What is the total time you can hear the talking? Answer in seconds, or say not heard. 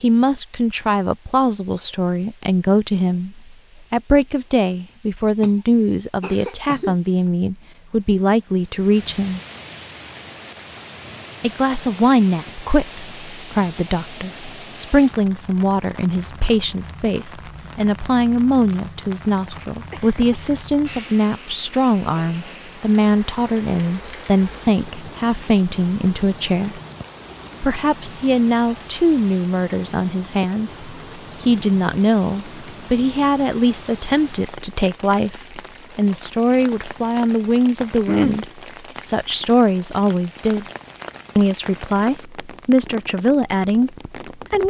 41 s.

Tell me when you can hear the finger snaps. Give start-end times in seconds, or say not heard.
not heard.